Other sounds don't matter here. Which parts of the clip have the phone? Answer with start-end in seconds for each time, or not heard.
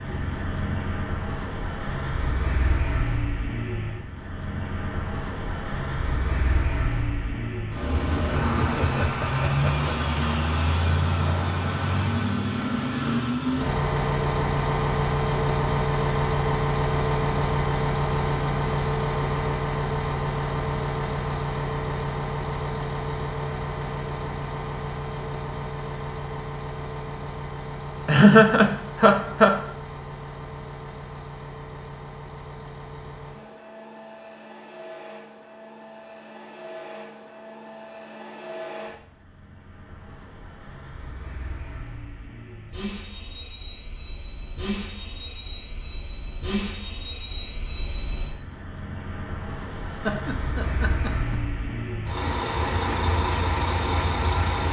not heard.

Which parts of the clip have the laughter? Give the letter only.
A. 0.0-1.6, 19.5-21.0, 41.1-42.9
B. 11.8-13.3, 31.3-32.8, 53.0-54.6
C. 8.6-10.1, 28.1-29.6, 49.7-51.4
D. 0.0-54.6
C.